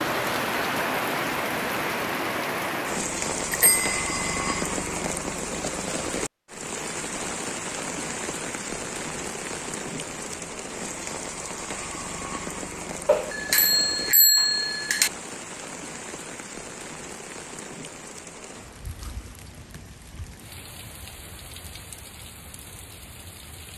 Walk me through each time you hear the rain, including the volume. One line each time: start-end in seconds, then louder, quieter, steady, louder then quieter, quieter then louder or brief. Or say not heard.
0.0-23.7 quieter.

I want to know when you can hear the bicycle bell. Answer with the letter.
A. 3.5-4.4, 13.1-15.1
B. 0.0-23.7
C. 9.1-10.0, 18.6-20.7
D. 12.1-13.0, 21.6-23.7
A.